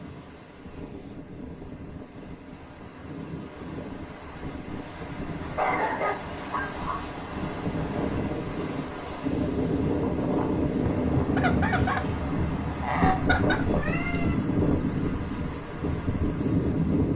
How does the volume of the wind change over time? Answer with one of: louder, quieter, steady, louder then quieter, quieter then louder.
louder.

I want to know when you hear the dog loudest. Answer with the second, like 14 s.
6 s.